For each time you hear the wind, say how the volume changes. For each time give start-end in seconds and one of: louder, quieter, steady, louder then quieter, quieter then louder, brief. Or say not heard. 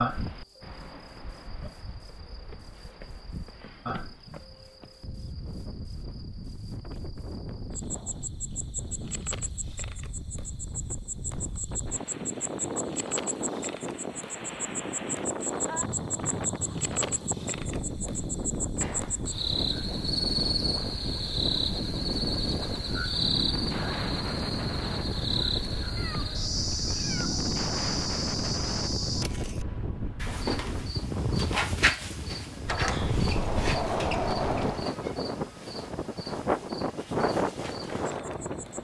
0.0-38.8 louder.